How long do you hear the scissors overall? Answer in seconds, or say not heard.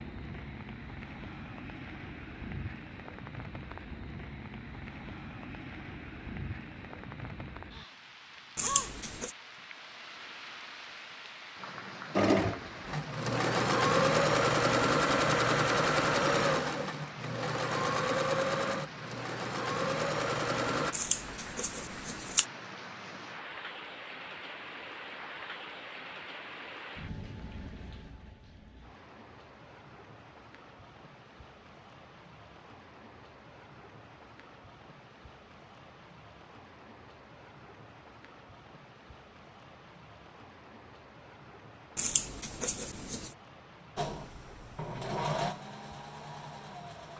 4 s.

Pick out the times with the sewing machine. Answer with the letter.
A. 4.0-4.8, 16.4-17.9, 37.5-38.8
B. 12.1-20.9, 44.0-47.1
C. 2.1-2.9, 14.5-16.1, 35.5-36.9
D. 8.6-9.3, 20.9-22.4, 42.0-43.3
B.